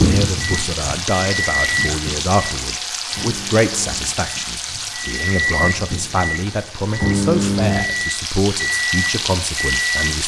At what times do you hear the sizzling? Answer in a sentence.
The sizzling can be heard from 0.0 to 10.2 s.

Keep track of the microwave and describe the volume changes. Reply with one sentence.
The volume of the microwave goes down, then up.